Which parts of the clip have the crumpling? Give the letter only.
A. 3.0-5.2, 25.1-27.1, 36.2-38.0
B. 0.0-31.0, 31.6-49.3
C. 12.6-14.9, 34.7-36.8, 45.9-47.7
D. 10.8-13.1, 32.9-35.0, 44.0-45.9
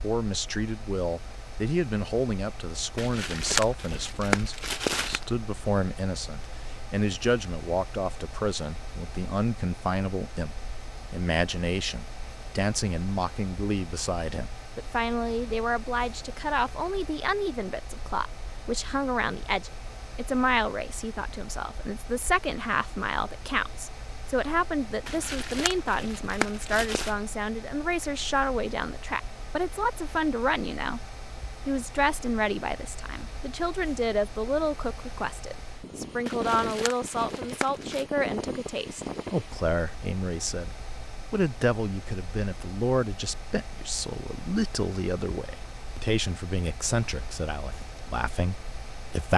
A.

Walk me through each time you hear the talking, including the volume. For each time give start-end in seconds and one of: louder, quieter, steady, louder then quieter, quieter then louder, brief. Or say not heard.
0.0-31.0 steady
31.6-49.3 steady.